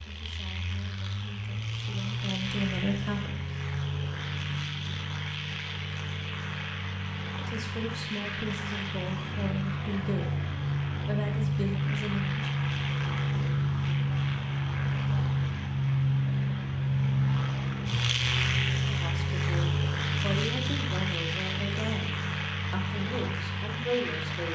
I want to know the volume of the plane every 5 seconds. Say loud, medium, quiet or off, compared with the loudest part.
medium, medium, loud, loud, medium.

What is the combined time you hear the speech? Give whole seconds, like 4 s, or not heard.
14 s.